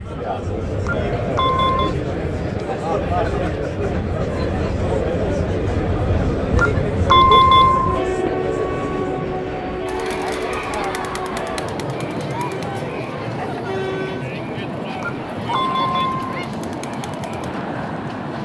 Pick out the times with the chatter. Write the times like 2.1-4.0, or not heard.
0.0-18.4.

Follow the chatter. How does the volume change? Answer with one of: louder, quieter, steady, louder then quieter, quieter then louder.
quieter.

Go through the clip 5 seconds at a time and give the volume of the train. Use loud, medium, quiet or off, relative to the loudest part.
medium, loud, loud, loud.